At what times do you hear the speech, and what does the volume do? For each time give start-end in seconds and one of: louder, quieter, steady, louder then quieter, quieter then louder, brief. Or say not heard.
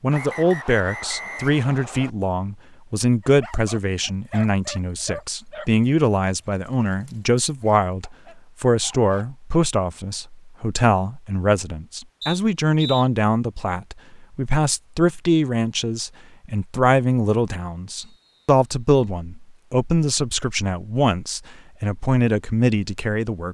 0.0-23.4 steady.